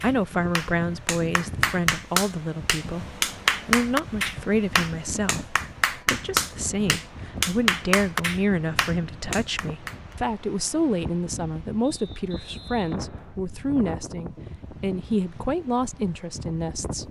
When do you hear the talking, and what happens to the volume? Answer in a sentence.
The talking can be heard from 0.0 to 17.0 s, at a steady volume.